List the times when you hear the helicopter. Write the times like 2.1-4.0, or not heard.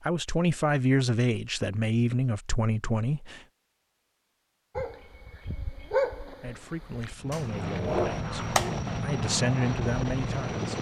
7.2-10.7.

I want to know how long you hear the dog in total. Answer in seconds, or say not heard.
4 s.